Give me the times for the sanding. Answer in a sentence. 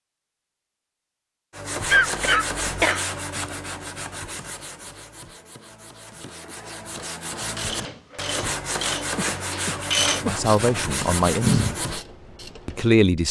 The sanding can be heard from 1.5 to 12.1 s.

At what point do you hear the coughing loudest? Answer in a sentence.
The loudest moment of the coughing is at 2 seconds.